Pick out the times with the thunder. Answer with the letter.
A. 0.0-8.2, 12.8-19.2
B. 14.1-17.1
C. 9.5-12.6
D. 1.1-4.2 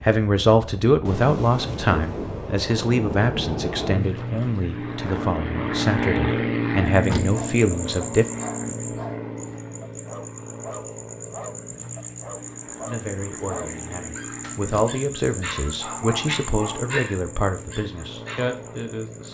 D.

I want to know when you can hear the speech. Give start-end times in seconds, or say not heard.
0.0-8.2, 12.8-19.2.